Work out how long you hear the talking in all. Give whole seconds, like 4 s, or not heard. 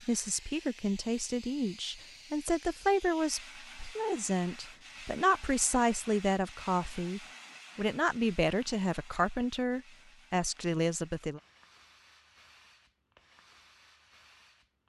11 s.